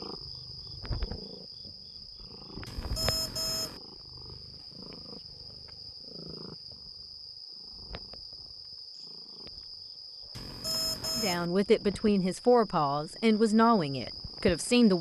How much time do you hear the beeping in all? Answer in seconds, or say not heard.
2 s.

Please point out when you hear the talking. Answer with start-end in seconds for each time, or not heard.
11.2-14.9.